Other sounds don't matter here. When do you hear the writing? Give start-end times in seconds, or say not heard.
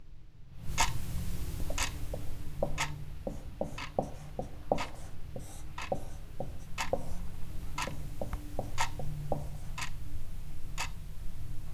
1.6-7.2, 7.8-9.8.